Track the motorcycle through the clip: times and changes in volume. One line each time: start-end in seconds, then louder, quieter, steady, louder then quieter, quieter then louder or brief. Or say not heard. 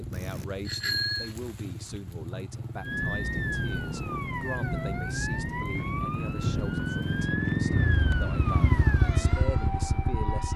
0.0-10.5 louder.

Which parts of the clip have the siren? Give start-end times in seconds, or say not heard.
2.8-10.5.